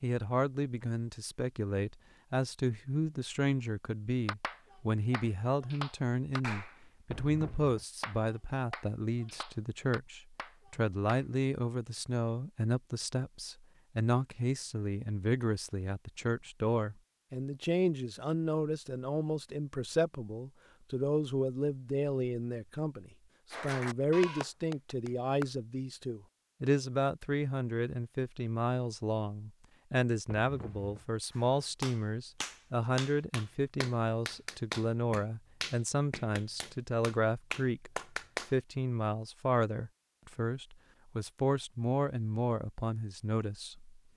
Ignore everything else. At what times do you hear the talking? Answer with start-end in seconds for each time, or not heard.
0.0-37.9, 38.5-44.0.